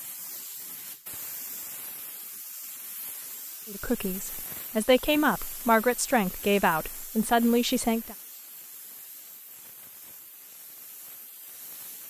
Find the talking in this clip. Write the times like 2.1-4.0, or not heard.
3.6-8.2.